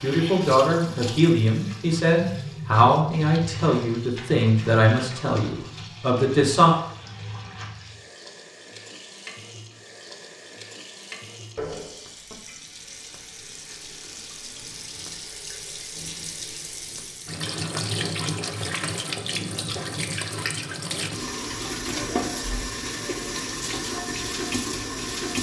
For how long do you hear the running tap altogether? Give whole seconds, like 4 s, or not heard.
25 s.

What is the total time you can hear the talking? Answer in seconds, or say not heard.
7 s.